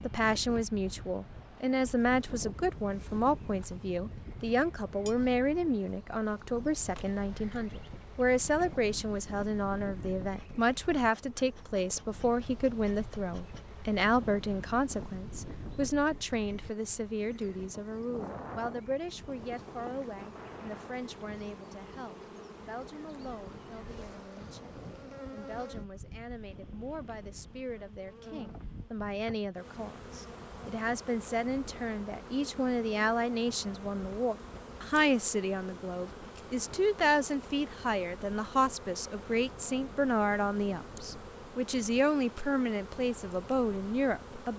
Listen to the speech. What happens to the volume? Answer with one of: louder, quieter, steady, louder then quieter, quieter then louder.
quieter then louder.